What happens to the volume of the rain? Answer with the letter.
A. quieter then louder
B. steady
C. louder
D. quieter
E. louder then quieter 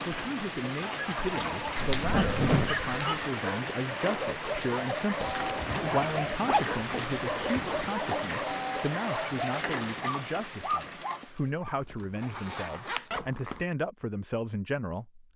B.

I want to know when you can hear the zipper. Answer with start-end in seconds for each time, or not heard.
1.8-2.9, 5.2-7.9, 11.7-13.7.